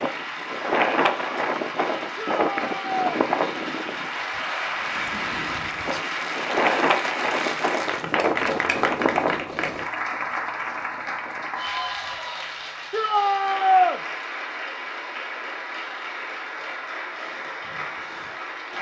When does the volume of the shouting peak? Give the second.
14 s.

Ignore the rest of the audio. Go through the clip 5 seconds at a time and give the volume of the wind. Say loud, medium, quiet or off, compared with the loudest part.
loud, loud, off, off.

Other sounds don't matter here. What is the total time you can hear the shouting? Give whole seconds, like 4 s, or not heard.
2 s.